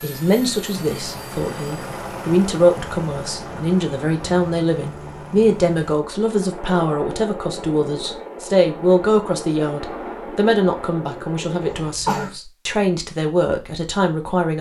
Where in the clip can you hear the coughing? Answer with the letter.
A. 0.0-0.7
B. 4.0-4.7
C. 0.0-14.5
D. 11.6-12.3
D.